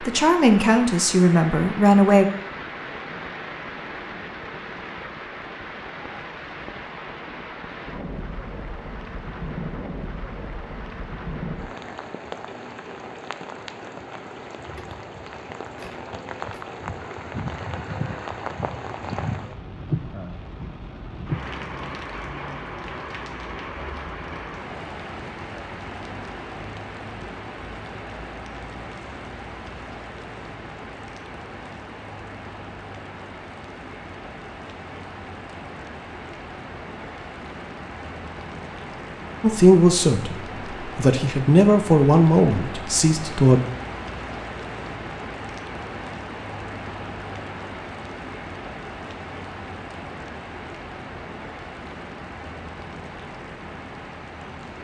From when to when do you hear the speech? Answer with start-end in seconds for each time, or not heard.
0.0-2.2, 39.4-43.6.